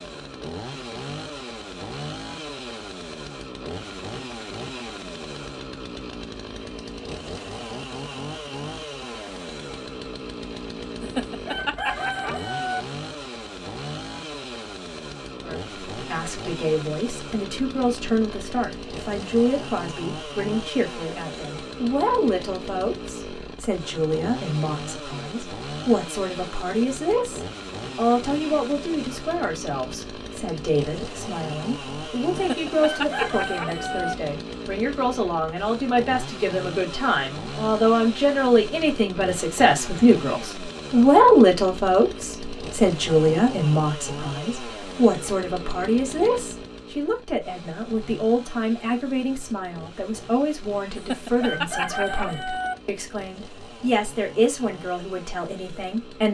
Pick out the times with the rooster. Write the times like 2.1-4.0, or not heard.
11.0-12.8, 32.4-34.1, 51.0-52.8.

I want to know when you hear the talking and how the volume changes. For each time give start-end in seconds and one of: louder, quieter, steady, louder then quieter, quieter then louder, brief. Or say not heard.
15.3-56.2 louder then quieter.